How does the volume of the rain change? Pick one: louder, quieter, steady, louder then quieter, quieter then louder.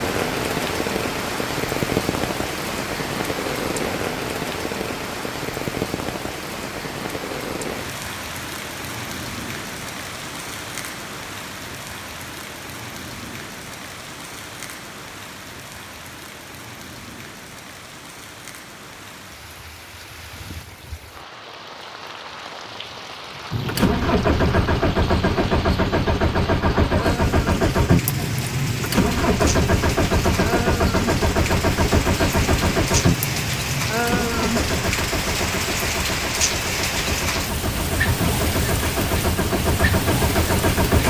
quieter then louder.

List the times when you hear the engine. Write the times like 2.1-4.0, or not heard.
23.5-41.0.